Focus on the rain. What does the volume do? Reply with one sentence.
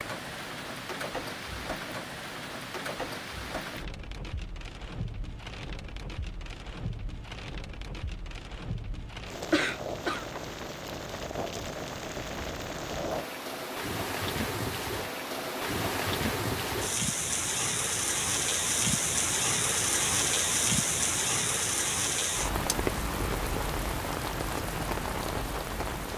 The loudness of the rain goes up.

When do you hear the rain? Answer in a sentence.
You can hear the rain from 0.0 to 26.1 s.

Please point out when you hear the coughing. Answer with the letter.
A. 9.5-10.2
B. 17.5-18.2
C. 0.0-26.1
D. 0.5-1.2
A.